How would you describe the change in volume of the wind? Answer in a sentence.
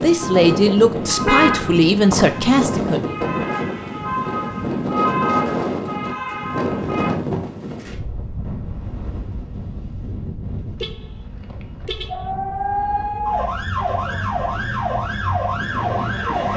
The loudness of the wind goes down.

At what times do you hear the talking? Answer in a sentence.
You can hear the talking from 0.0 to 3.1 s.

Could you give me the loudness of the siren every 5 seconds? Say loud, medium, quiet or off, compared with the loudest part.
medium, loud, loud, loud.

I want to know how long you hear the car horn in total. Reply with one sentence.
The car horn can be heard for 3 seconds in total.